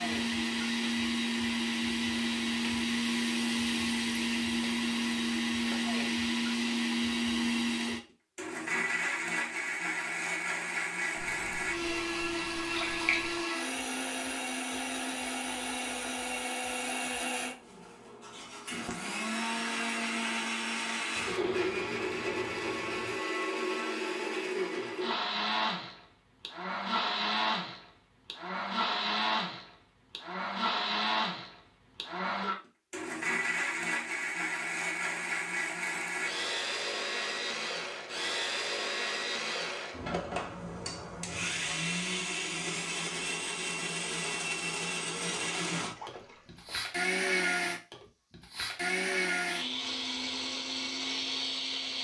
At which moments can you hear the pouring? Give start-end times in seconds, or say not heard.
11.2-13.4, 21.1-23.1, 45.9-46.8.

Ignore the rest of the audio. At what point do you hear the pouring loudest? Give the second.
13 s.